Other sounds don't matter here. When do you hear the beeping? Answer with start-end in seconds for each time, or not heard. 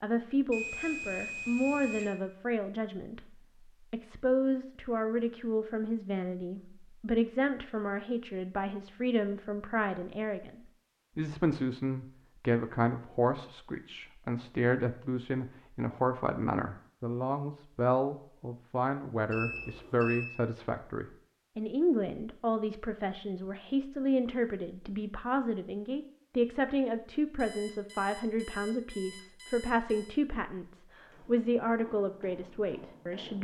0.5-2.1, 19.3-20.2, 27.4-30.1.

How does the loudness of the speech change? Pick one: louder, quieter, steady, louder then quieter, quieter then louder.
steady.